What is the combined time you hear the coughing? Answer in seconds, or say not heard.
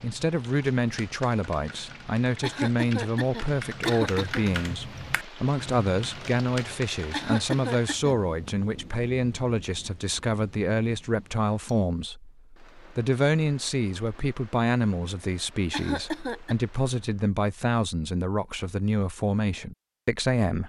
4 s.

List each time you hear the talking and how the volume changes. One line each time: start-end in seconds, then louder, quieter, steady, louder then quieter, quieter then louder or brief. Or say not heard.
0.0-20.6 steady.